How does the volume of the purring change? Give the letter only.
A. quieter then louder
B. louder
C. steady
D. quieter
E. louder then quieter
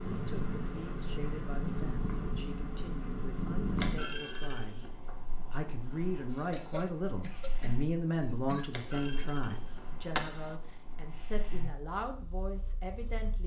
D.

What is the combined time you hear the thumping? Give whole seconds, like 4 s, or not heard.
3 s.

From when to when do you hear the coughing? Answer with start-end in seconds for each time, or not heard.
6.3-8.7.